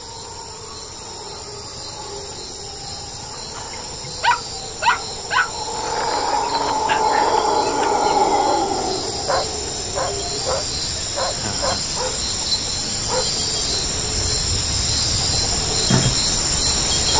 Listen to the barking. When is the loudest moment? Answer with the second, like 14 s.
5 s.